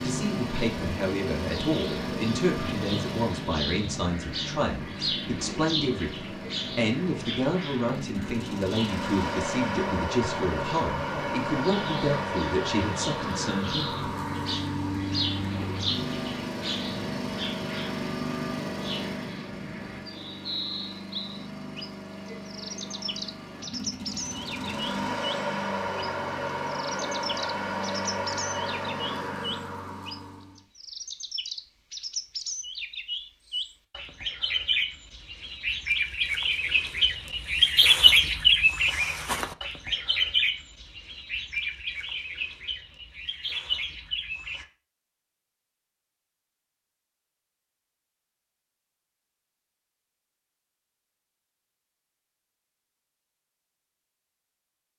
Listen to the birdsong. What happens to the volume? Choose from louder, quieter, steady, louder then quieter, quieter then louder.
louder.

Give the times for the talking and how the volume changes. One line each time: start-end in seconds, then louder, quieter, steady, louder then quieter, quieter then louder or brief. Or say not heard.
0.0-13.8 steady.